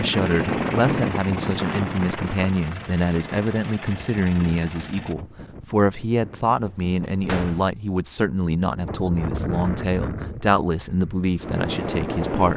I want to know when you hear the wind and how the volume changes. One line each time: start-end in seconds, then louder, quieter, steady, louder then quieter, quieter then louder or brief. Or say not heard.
0.0-12.5 quieter then louder.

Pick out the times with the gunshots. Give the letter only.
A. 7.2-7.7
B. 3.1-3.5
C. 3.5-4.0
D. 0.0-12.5
A.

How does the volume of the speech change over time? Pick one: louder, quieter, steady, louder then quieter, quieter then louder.
steady.